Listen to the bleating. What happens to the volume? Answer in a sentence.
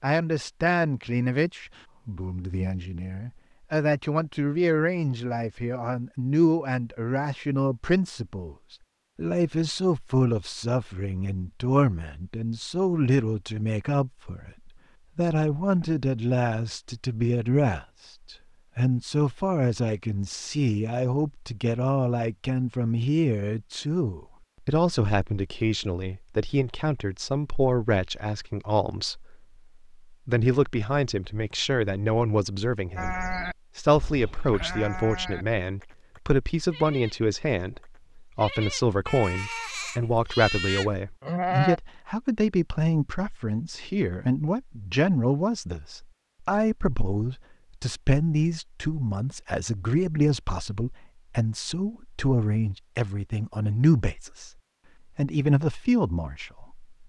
The volume of the bleating goes down, then up.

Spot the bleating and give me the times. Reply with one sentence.
You can hear the bleating from 33.0 to 41.8 s.